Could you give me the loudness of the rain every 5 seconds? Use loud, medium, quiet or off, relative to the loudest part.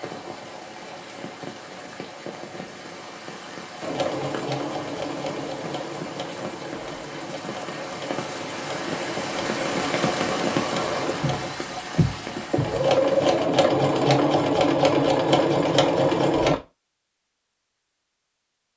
medium, loud, loud, off.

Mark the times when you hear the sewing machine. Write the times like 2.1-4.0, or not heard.
3.8-16.6.